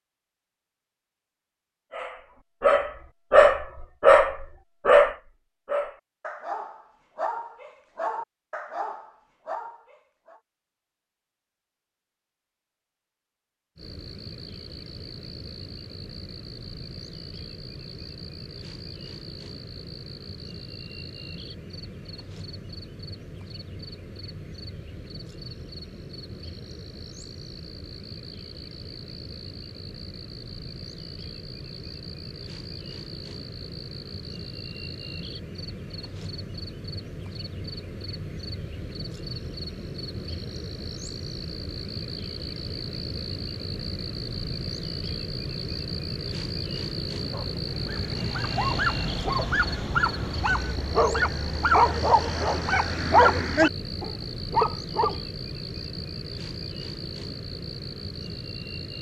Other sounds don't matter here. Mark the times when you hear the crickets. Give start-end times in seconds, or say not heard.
13.8-58.9.